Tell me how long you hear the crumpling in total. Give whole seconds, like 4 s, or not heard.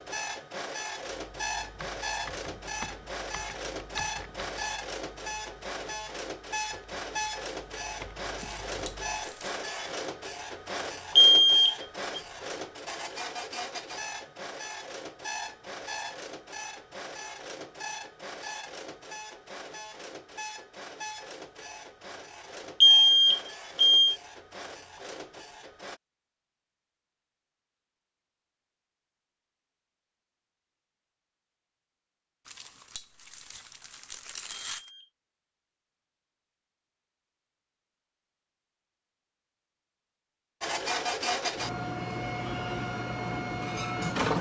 4 s.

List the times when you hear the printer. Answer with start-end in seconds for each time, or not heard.
0.0-26.0, 40.6-44.3.